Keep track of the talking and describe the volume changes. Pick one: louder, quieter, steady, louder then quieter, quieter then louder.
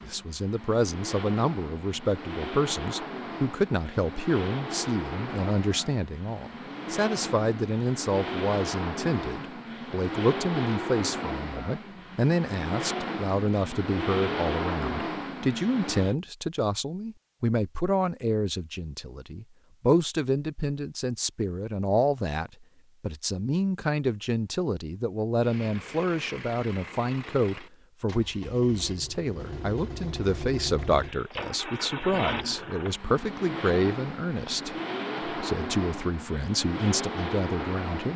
steady.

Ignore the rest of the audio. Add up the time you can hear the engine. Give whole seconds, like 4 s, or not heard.
29 s.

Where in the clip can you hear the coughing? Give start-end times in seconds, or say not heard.
not heard.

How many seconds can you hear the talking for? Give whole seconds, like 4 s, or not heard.
38 s.